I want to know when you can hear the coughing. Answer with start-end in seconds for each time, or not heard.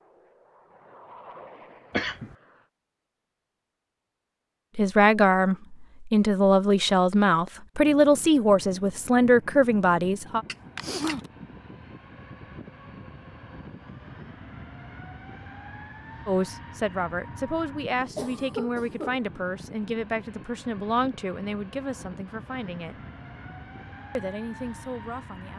1.9-2.4, 10.4-11.3, 18.1-19.2.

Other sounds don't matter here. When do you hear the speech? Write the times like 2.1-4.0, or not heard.
4.8-10.4, 16.2-23.0, 24.1-25.5.